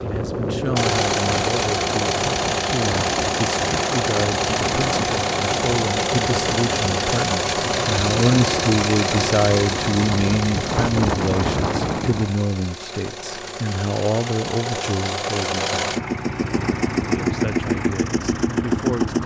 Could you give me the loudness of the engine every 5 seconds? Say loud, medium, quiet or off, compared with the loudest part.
loud, loud, medium, loud.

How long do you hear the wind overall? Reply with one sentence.
You can hear the wind for 12 seconds altogether.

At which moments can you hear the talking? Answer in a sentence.
The talking can be heard from 0.0 to 15.8 s and from 17.1 to 19.2 s.